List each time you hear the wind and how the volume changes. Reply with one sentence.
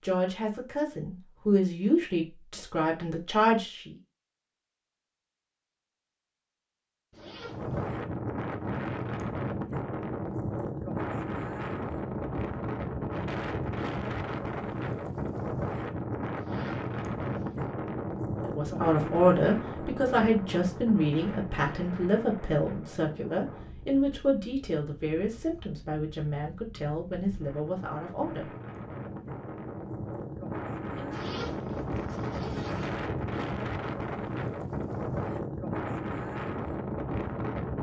You can hear the wind from 7.4 to 37.7 s, getting quieter then louder.